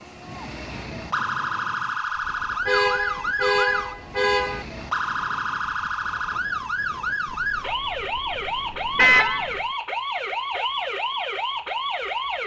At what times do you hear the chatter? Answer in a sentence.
You can't hear the chatter here.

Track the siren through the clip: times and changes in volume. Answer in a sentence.
The siren can be heard from 0.0 to 12.4 s, at a steady volume.